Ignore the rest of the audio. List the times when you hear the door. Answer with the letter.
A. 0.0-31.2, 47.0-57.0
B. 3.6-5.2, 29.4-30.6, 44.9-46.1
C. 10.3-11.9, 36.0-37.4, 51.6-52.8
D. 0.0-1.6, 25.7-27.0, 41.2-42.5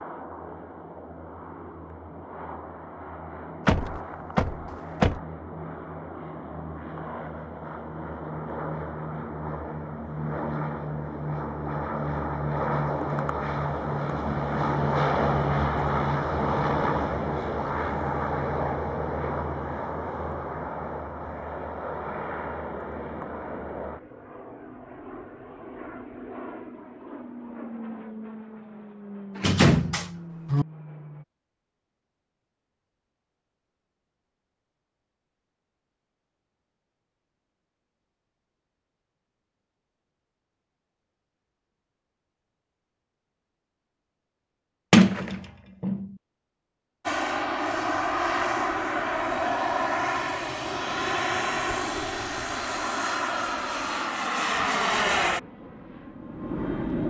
B.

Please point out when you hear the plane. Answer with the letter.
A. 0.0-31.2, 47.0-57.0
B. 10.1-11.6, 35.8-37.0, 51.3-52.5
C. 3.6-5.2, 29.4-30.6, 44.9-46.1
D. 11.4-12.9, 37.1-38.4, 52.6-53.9
A.